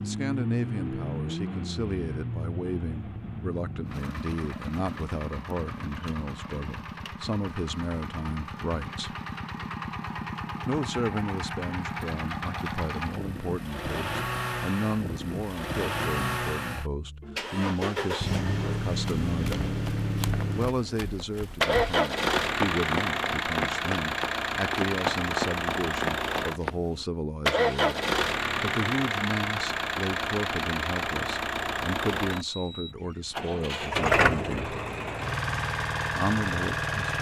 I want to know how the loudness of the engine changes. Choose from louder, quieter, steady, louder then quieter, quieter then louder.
louder.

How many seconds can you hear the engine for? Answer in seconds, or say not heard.
37 s.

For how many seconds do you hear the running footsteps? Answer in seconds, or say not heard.
8 s.